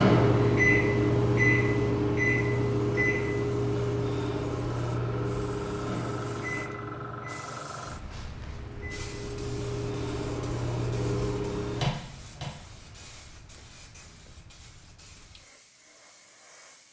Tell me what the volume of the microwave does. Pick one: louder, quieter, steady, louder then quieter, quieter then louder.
quieter then louder.